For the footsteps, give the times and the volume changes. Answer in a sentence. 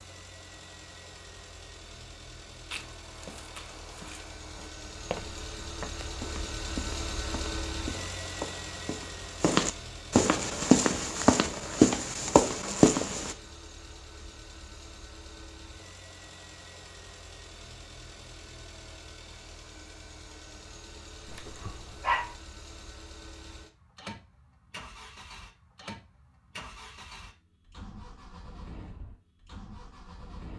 You can hear the footsteps from 2.7 to 13.3 s, getting louder.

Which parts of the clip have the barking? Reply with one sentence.
You can hear the barking from 21.2 to 22.4 s.